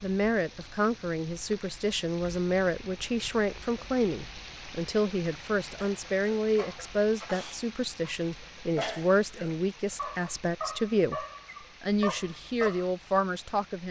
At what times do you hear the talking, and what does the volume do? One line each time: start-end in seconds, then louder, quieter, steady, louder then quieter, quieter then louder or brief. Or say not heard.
0.0-13.8 steady.